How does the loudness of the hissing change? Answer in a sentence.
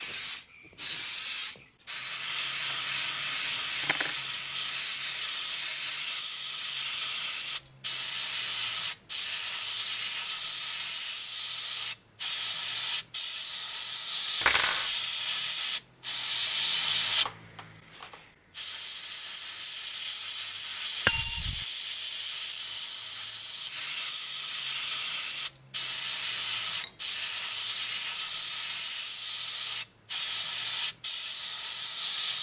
The volume of the hissing stays about the same.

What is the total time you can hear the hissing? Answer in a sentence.
You can hear the hissing for 32 seconds altogether.